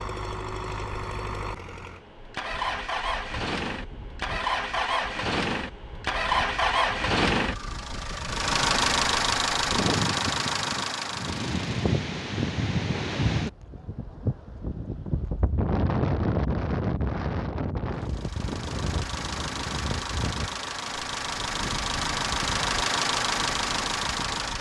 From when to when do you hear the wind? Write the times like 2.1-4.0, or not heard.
0.0-24.5.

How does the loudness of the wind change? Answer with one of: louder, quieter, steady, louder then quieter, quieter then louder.
louder then quieter.